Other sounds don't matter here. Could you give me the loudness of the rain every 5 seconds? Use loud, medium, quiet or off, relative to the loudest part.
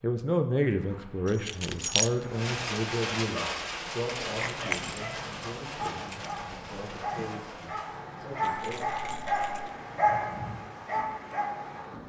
loud, medium, medium.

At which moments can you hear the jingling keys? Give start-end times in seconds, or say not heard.
1.2-2.1, 4.3-6.4, 8.4-9.7.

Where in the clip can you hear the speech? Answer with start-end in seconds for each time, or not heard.
0.0-8.8.